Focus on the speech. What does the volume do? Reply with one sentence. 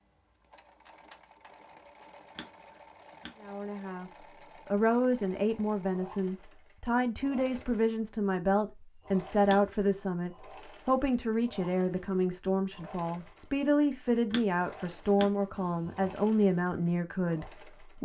The volume of the speech stays about the same.